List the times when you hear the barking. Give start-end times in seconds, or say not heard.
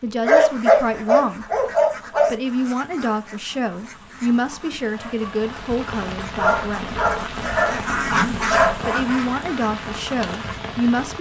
0.2-2.3, 6.3-8.8.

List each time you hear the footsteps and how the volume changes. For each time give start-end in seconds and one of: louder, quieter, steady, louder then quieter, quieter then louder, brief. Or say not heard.
not heard.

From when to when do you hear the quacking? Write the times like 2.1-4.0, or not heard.
0.3-10.6.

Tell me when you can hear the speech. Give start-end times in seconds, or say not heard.
0.0-1.4, 2.2-7.0, 8.8-11.1.